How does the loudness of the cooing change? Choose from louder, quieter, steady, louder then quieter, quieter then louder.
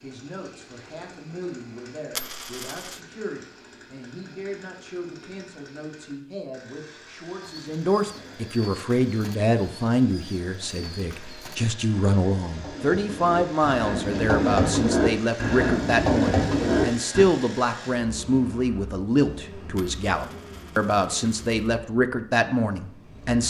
louder.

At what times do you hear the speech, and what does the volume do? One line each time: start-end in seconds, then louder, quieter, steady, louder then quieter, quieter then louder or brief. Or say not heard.
0.0-23.4 louder.